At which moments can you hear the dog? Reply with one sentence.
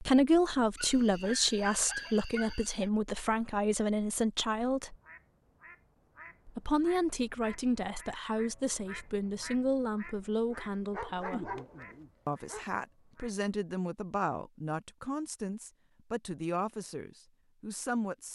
You can hear the dog from 0.8 to 2.9 s and from 10.5 to 12.7 s.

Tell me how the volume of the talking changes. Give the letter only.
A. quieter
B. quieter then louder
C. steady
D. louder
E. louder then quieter
A.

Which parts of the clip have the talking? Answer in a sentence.
The talking can be heard from 0.0 to 5.0 s, from 6.5 to 11.6 s and from 12.2 to 18.3 s.